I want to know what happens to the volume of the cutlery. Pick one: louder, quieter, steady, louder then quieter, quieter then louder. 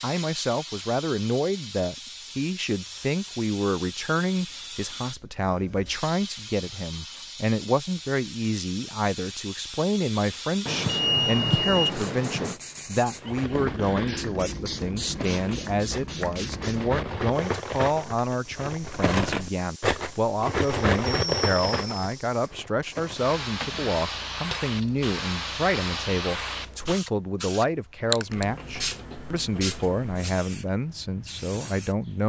louder then quieter.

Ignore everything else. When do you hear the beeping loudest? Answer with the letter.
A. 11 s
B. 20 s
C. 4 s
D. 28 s
A.